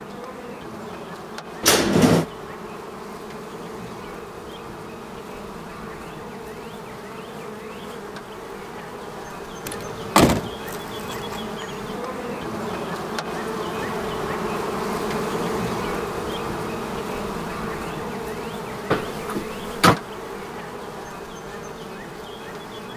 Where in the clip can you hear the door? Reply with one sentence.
The door can be heard from 1.6 to 2.2 s, from 9.7 to 11.4 s and from 18.9 to 20.0 s.